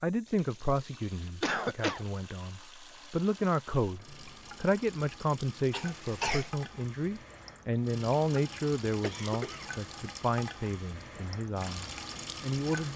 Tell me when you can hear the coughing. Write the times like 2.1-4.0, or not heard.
1.4-2.0, 5.7-6.5, 9.0-9.7.